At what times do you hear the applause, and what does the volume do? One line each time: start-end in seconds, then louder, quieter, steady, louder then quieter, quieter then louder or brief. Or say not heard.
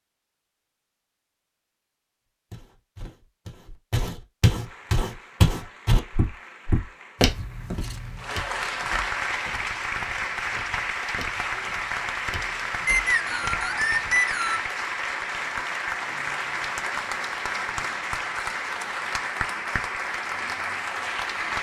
4.6-21.5 louder.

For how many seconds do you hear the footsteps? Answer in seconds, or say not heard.
12 s.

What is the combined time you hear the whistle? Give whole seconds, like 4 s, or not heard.
2 s.